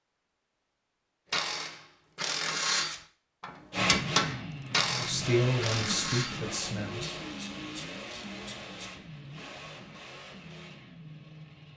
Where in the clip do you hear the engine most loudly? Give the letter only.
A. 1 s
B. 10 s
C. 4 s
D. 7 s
C.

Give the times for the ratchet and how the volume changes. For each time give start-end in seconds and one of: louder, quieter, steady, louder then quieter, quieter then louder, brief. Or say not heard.
1.3-8.9 quieter.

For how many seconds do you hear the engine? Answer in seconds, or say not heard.
8 s.